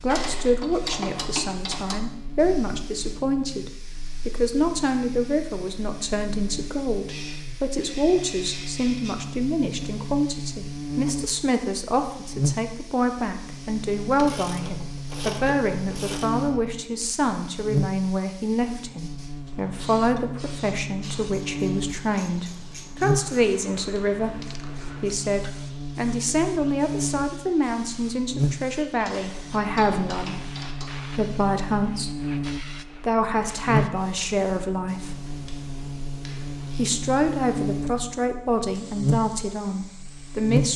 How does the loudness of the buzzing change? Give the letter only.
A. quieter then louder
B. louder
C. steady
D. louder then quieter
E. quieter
B.